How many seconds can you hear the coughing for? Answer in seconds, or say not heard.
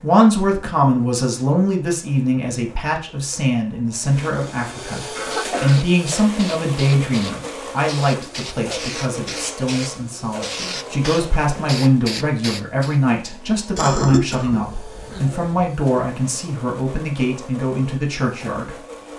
3 s.